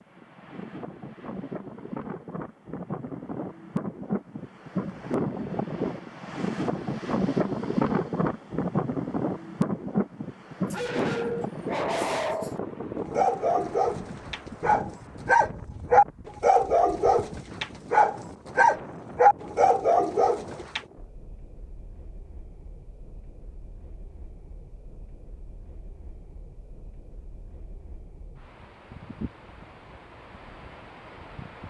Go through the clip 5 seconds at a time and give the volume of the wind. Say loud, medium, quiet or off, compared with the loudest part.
medium, loud, medium, quiet, quiet, quiet, quiet.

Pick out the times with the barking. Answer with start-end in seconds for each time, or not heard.
10.7-20.8.